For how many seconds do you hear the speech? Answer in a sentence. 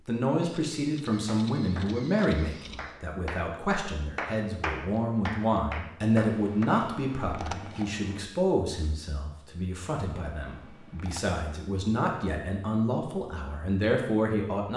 You can hear the speech for 15 seconds altogether.